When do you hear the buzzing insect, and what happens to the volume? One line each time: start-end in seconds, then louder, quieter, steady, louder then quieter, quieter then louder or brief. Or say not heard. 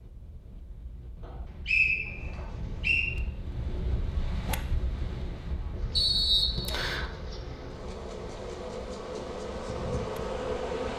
5.8-10.9 louder.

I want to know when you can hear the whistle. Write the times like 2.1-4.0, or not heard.
1.2-3.1, 6.0-7.0.